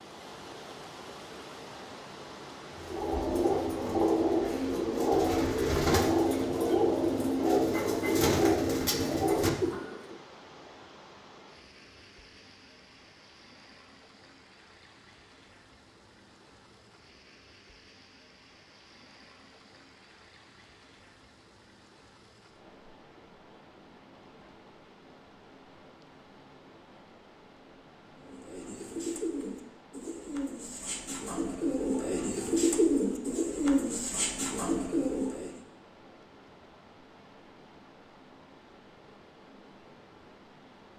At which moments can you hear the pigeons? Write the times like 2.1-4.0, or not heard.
2.8-10.2, 28.1-35.5.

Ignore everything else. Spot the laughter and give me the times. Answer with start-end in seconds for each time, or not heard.
not heard.